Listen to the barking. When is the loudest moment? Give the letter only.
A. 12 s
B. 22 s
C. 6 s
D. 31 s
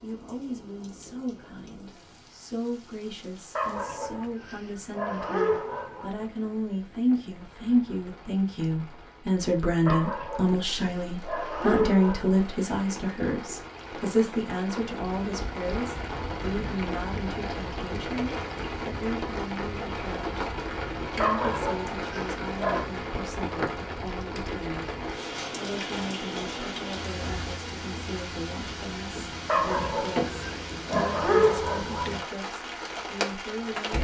D.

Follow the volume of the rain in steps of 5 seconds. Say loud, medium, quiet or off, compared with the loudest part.
quiet, quiet, medium, loud, loud, loud, loud.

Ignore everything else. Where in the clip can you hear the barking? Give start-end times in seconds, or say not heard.
3.5-6.2, 9.8-12.4, 21.1-22.9, 29.4-32.2.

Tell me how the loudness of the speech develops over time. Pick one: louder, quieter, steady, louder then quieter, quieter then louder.
louder then quieter.